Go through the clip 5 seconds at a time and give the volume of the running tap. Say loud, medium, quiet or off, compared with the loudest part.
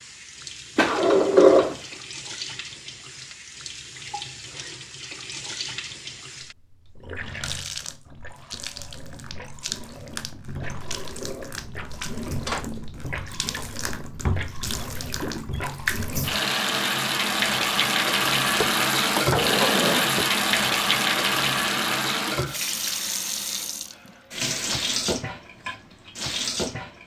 quiet, quiet, medium, loud, loud, medium.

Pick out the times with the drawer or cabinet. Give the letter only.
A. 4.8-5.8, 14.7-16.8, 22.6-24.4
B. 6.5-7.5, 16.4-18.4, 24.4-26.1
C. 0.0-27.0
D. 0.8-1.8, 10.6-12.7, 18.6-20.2
D.